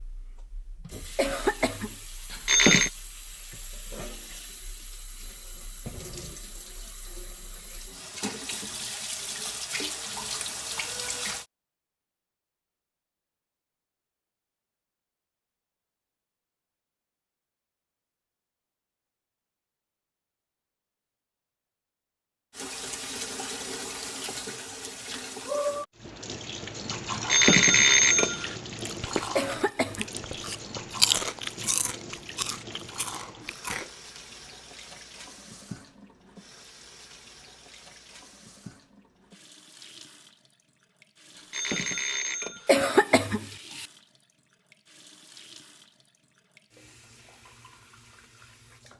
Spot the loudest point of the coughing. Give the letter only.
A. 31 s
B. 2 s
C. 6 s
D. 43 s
D.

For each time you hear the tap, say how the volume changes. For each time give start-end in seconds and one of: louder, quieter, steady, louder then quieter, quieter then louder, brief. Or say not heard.
0.0-11.4 louder
22.5-48.9 quieter.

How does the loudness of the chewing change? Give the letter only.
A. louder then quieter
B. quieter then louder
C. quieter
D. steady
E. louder
A.